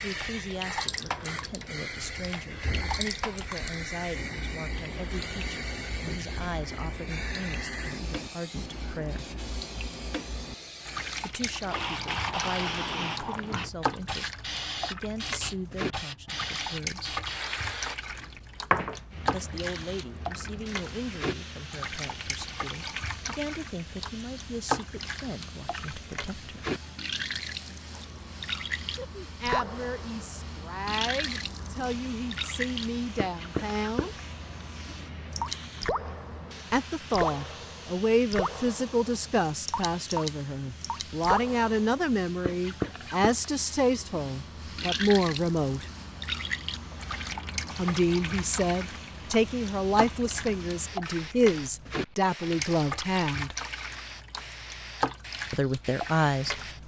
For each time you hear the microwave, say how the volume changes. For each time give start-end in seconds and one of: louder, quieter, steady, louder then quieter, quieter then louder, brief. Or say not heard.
not heard.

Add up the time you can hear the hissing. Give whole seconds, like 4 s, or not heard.
57 s.